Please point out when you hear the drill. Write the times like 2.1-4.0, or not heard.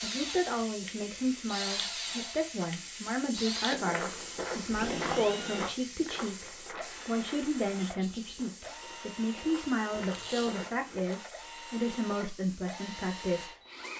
0.0-13.9.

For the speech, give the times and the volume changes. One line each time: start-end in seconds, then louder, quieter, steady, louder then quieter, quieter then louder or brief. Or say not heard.
0.0-13.6 steady.